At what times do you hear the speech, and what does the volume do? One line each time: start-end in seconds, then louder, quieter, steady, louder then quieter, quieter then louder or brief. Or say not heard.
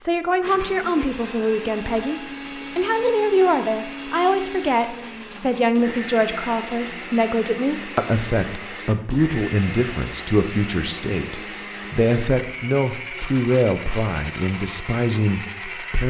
0.0-16.0 steady.